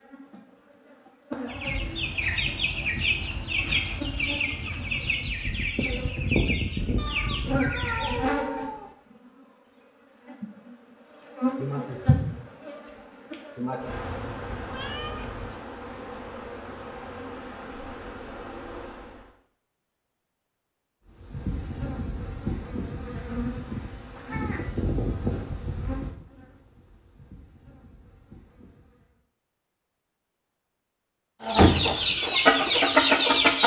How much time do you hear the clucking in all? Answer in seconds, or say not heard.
9 s.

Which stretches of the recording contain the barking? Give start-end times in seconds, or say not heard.
not heard.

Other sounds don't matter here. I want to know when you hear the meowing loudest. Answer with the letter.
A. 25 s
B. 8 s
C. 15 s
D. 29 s
B.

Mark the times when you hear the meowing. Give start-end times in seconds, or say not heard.
7.0-8.9, 13.8-15.6, 23.8-24.7.